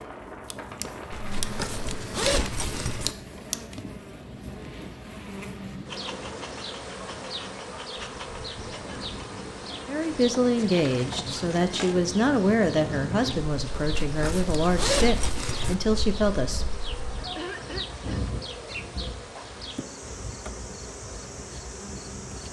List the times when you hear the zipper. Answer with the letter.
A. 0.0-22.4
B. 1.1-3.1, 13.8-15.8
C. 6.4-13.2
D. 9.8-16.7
B.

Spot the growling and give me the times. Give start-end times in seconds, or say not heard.
not heard.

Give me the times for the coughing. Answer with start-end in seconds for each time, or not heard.
17.4-18.2.